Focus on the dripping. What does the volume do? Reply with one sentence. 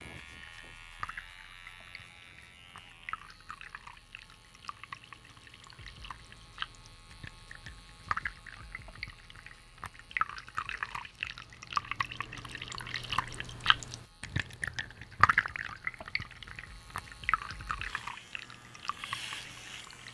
The volume of the dripping goes up, then down.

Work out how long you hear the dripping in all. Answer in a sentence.
You can hear the dripping for 20 seconds altogether.